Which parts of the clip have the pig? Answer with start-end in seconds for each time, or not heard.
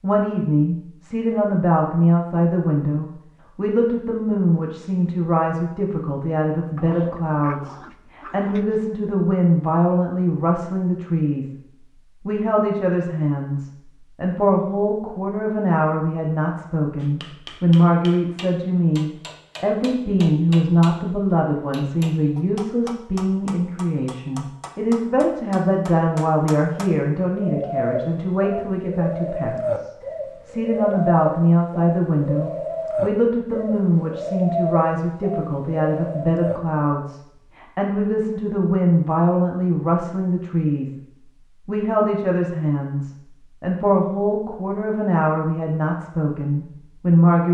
not heard.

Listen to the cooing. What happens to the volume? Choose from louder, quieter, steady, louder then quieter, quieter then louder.
steady.